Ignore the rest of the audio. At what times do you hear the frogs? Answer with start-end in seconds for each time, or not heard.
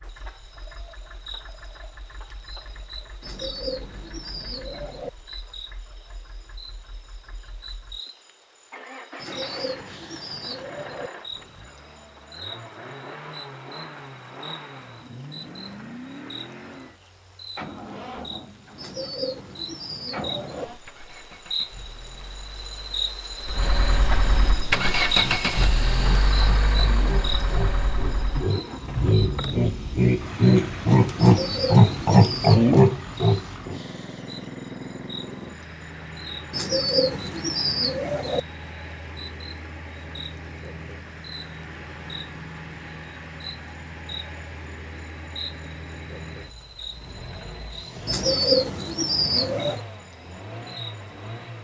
not heard.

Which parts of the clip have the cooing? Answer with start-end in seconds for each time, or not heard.
3.2-5.1, 9.2-11.1, 18.8-20.6, 31.1-32.6, 36.5-38.4, 48.0-49.8.